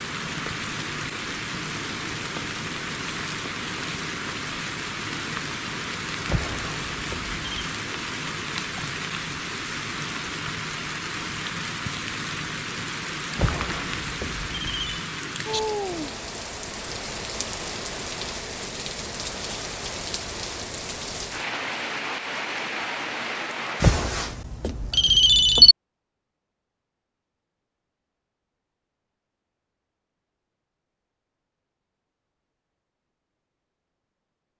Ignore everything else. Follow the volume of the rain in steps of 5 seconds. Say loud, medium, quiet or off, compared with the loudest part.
loud, loud, loud, loud, loud, off, off.